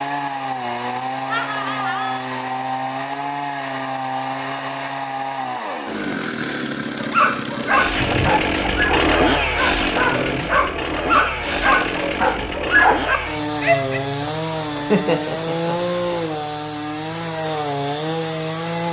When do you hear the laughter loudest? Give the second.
15 s.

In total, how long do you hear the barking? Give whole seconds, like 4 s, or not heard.
7 s.